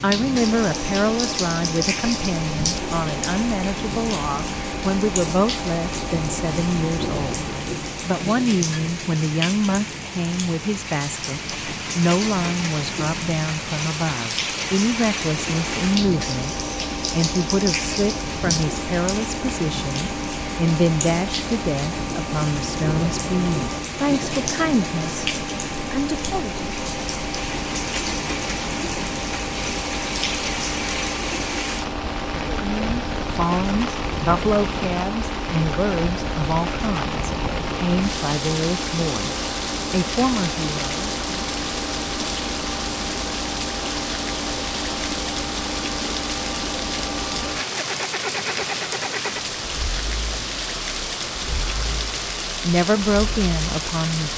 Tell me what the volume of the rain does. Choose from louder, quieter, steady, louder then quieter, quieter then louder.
steady.